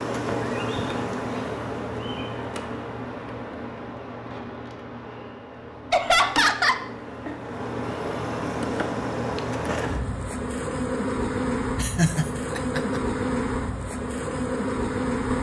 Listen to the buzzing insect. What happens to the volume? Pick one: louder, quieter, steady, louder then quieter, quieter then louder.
quieter then louder.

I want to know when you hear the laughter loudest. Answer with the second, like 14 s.
6 s.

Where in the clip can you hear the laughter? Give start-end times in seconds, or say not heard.
5.9-6.8, 11.8-13.0.